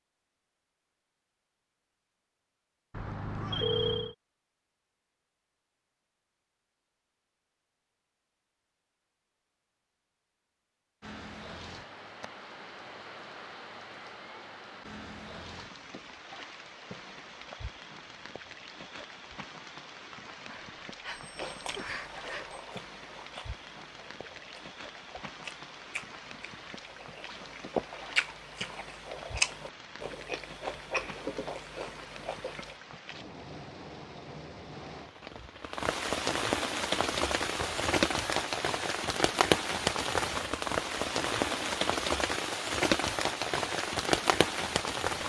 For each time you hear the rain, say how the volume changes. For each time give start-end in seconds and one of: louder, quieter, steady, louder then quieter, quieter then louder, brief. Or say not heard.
11.0-45.2 louder.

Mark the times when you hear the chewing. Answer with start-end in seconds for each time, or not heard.
21.4-32.8.